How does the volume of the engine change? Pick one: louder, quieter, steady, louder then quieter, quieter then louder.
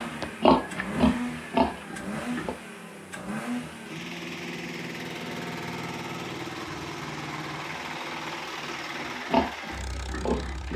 steady.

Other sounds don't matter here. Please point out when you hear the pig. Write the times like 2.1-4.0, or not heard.
0.0-2.5, 9.1-10.7.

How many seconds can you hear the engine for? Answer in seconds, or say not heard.
11 s.